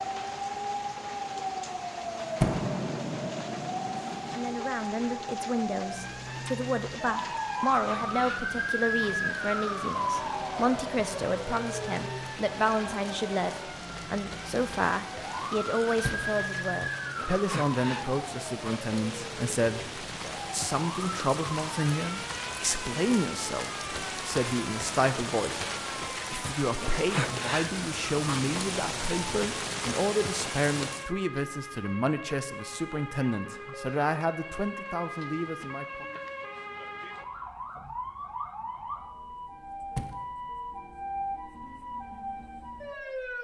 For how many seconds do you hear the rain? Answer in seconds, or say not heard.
31 s.